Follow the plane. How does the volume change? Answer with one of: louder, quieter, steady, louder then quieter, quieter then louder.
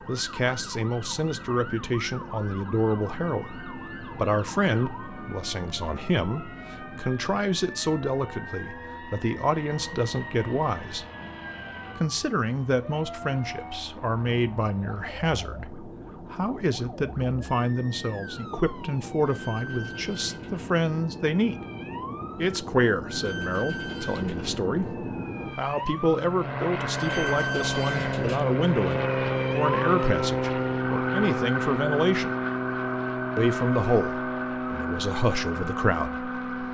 louder.